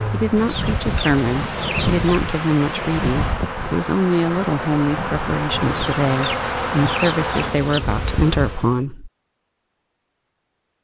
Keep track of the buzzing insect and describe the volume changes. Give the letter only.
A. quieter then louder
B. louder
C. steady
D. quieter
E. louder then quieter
B.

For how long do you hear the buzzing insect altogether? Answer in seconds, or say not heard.
9 s.